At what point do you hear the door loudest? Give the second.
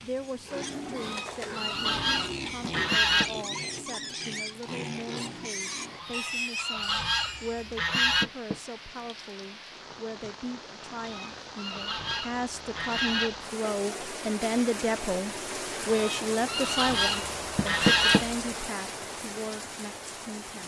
18 s.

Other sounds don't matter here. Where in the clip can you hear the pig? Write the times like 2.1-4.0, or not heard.
0.2-7.7.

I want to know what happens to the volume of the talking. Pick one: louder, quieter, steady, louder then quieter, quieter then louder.
louder.